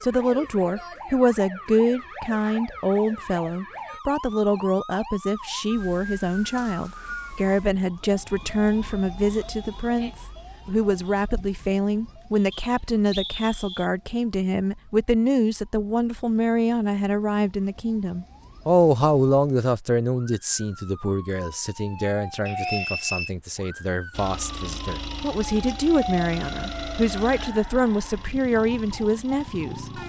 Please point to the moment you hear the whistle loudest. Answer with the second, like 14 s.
23 s.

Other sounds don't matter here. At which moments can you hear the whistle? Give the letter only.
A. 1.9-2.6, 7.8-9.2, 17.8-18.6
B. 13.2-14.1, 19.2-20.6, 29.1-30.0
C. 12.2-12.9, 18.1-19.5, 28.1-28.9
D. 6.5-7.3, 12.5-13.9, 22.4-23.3
D.